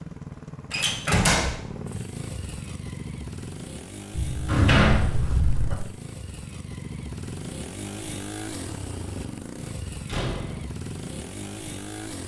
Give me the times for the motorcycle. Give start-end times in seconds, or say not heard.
0.0-12.2.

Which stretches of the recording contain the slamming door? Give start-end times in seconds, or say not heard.
0.7-1.6, 4.1-5.8, 10.1-10.7.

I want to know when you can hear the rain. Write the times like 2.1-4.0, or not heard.
not heard.